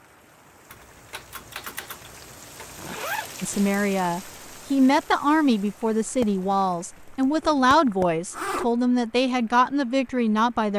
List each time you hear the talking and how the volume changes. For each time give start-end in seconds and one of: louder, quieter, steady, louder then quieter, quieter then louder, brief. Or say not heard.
3.4-10.7 steady.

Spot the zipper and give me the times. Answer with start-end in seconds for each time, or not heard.
2.8-3.6, 7.4-8.7.